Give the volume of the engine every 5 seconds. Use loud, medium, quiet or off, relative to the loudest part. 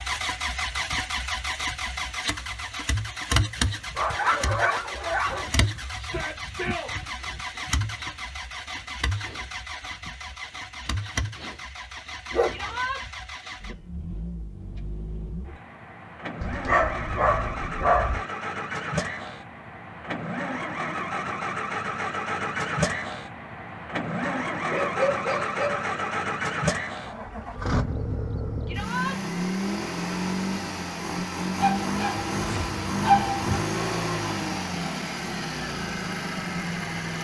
loud, medium, medium, medium, loud, loud, loud, loud.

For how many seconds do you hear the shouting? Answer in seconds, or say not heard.
2 s.